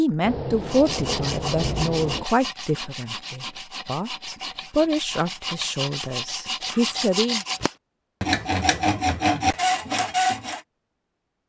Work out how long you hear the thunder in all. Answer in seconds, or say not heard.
2 s.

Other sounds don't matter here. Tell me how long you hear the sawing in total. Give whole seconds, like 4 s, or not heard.
10 s.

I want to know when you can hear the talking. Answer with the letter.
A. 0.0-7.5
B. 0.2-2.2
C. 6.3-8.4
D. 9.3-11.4
A.